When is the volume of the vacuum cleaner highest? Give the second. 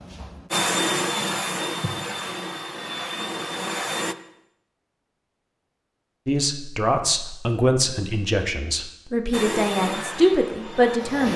1 s.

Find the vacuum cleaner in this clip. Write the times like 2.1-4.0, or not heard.
0.0-4.2, 9.3-11.3.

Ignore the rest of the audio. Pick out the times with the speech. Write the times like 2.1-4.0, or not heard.
6.2-11.3.